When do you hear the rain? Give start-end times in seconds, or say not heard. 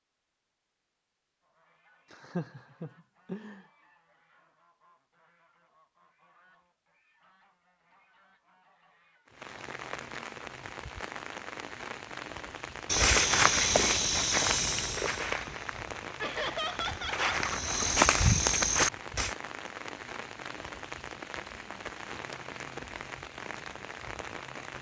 9.2-24.7.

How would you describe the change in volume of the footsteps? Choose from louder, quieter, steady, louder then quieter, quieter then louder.
quieter then louder.